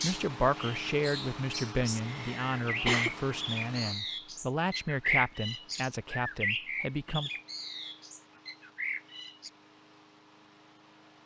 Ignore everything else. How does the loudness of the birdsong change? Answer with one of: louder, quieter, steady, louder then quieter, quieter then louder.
louder then quieter.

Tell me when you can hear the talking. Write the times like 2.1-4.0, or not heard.
0.0-7.3.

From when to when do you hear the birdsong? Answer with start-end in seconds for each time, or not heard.
0.0-9.5.